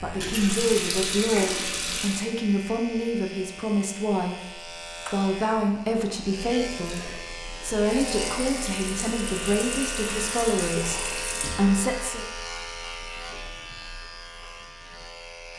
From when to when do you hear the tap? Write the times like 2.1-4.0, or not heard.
0.0-2.2, 6.8-11.7.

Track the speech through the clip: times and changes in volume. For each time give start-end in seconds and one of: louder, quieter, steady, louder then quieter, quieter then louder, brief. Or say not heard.
0.0-12.2 steady.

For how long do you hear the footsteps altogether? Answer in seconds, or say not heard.
not heard.